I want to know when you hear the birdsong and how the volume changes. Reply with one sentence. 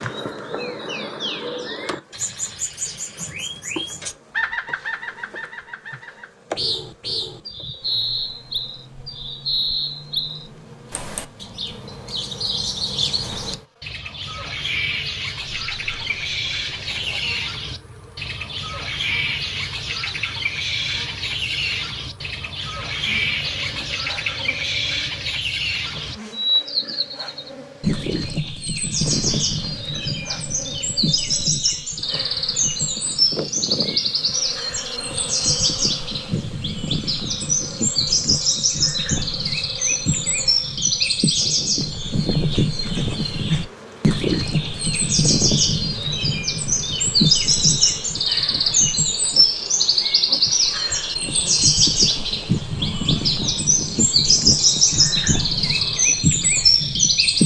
You can hear the birdsong from 0.0 to 57.4 s, getting louder.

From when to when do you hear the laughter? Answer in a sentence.
You can't hear the laughter here.